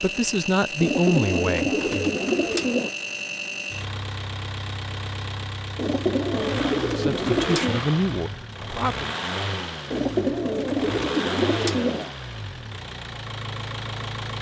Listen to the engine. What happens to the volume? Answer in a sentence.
The volume of the engine stays about the same.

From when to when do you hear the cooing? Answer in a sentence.
The cooing can be heard from 0.8 to 2.9 s, from 5.8 to 7.8 s and from 9.9 to 12.2 s.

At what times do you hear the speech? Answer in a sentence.
The speech can be heard from 0.0 to 2.2 s and from 6.8 to 9.1 s.